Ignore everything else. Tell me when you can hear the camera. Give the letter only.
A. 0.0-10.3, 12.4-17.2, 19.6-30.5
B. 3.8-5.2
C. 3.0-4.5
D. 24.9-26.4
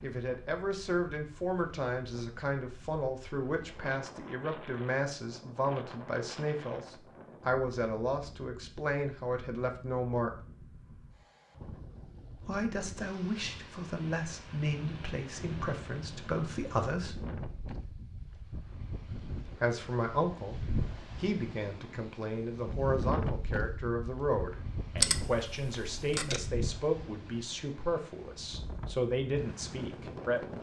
D.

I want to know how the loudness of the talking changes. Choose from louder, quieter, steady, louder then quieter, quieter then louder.
steady.